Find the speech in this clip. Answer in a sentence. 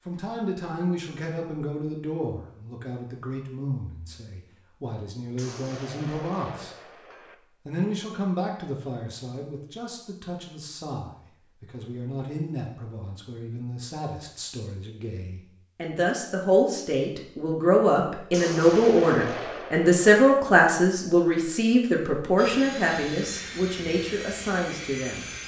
You can hear the speech from 0.1 to 6.8 s and from 7.7 to 25.3 s.